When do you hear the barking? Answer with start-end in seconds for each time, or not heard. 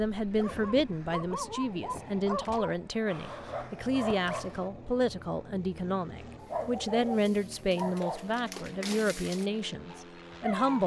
0.0-4.7, 6.4-10.8.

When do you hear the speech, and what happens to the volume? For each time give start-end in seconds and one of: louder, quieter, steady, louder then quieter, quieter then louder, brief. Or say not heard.
0.0-10.8 steady.